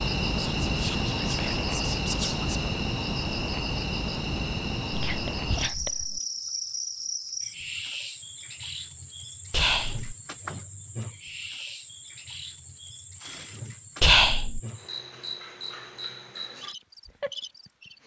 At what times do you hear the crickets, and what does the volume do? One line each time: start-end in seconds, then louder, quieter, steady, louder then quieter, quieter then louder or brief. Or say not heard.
0.0-18.0 quieter.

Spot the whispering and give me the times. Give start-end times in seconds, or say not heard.
0.6-2.8, 4.9-6.2, 9.5-10.2, 14.0-14.6.